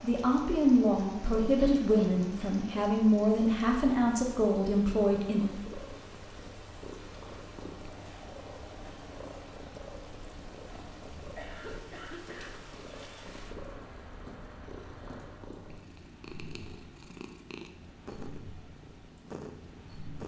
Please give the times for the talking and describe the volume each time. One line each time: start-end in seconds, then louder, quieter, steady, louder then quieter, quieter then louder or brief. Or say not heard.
0.0-5.5 steady.